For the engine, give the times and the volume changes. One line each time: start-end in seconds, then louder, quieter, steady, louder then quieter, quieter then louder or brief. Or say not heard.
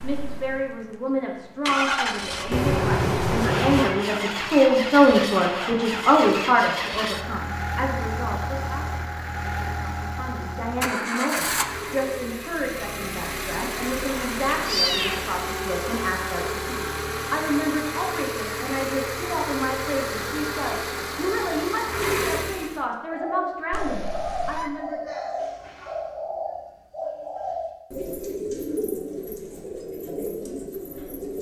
0.0-22.8 steady.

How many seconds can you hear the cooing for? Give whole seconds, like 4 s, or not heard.
8 s.